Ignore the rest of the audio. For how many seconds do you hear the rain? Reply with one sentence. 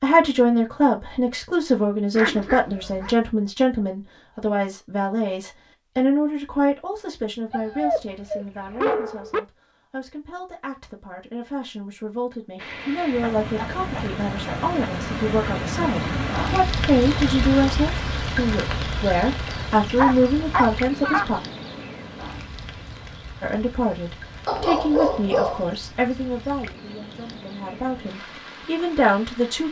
The rain can be heard for 17 seconds in total.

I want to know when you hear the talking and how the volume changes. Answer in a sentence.
You can hear the talking from 0.0 to 21.4 s, getting quieter then louder; and from 23.4 to 29.6 s, getting quieter then louder.